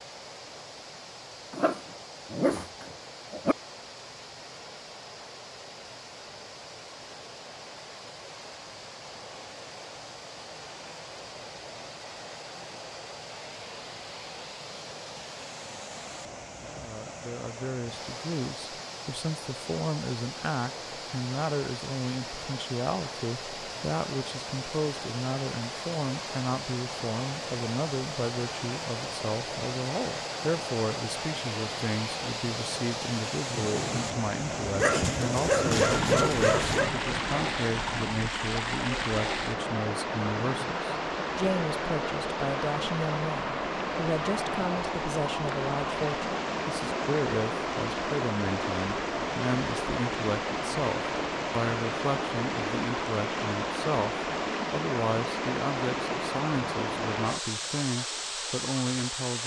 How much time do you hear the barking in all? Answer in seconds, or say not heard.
4 s.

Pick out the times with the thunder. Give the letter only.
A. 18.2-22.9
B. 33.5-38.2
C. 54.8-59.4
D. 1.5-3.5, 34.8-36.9
B.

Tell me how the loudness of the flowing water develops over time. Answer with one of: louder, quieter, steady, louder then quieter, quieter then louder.
louder.